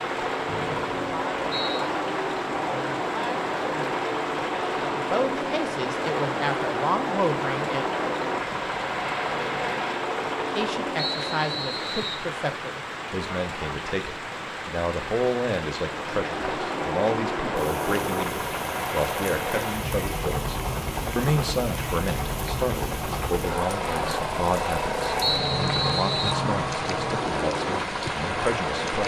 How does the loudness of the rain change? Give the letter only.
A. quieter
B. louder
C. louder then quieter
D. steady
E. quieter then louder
D.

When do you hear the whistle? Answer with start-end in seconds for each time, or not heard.
0.5-1.9, 10.9-12.2, 25.2-26.4.